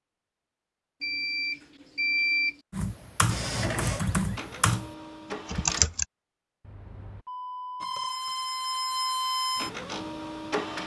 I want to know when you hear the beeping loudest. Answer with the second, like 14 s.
2 s.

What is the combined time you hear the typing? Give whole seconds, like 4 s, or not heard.
3 s.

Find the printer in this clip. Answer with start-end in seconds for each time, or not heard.
3.2-5.9, 7.8-10.8.